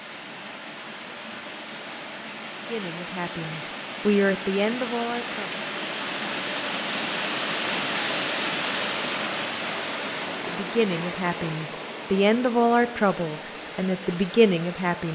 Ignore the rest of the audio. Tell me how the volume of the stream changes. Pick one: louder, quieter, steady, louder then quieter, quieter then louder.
louder then quieter.